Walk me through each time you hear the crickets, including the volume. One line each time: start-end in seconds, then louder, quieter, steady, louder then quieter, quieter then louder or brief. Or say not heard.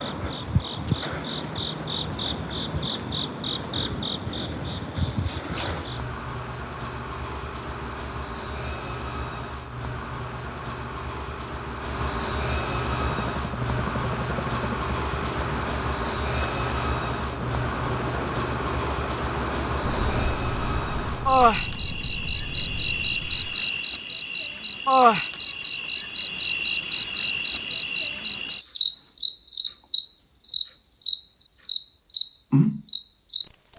0.0-33.7 louder.